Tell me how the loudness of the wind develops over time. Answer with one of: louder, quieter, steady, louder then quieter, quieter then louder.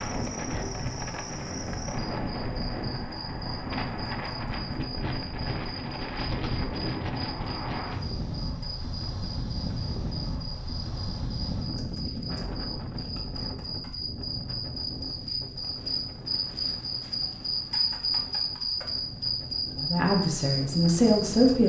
quieter.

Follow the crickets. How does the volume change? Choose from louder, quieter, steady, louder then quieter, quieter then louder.
louder.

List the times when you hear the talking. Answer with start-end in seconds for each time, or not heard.
19.8-21.6.